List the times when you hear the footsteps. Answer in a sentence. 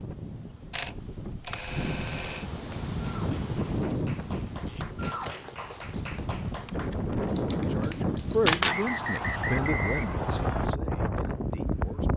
You can't hear the footsteps here.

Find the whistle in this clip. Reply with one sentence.
You can hear the whistle from 8.7 to 10.7 s.